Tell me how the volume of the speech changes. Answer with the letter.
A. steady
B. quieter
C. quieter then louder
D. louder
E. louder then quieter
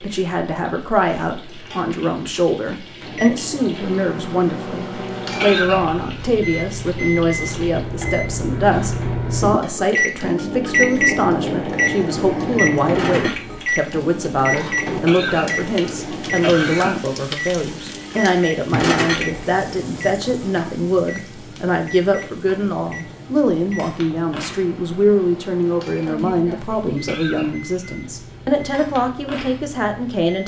A.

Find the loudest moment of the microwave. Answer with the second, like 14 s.
11 s.